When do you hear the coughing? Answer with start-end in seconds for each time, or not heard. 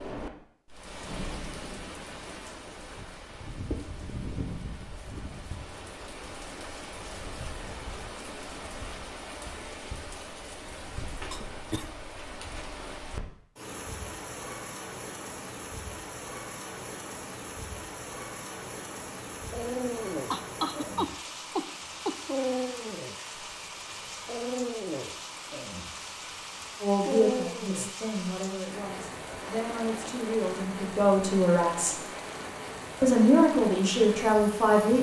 11.3-11.9, 20.3-22.1.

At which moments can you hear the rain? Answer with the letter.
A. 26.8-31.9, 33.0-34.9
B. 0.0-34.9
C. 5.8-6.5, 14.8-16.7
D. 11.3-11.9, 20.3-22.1
B.